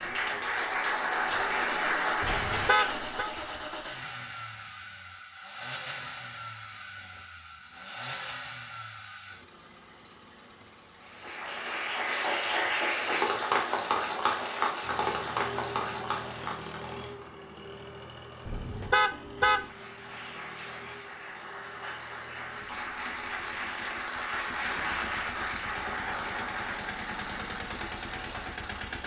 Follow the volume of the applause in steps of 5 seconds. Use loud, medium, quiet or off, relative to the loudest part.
loud, off, loud, medium, medium, medium.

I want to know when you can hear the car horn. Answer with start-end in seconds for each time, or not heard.
2.2-3.3, 18.4-19.7.